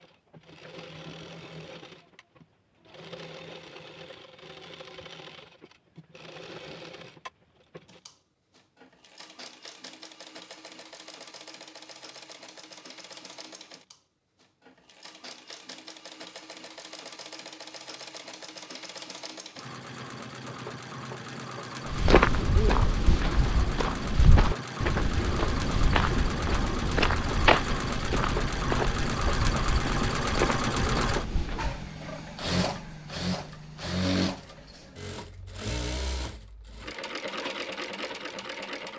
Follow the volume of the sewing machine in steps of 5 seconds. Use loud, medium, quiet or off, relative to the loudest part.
quiet, quiet, quiet, quiet, medium, loud, loud, medium.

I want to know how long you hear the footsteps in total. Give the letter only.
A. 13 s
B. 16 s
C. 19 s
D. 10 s
D.